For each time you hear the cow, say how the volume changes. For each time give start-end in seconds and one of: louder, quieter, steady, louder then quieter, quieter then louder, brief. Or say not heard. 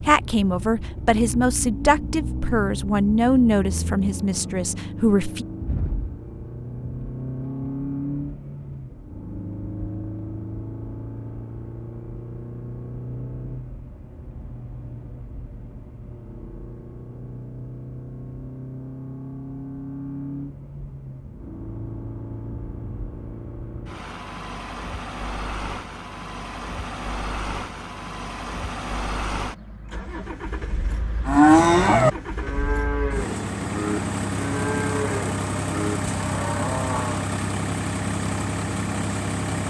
31.2-37.2 quieter.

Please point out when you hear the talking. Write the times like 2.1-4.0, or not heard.
0.0-5.5.